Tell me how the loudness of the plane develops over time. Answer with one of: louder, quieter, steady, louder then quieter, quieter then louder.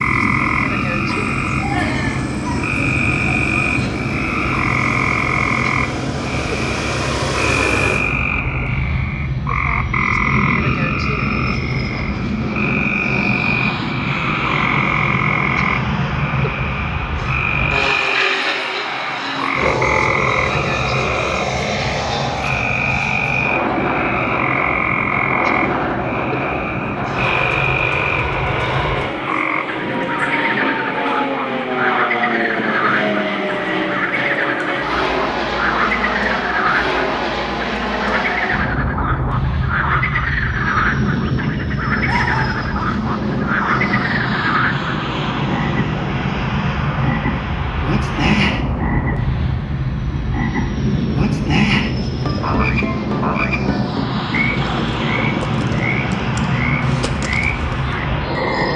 steady.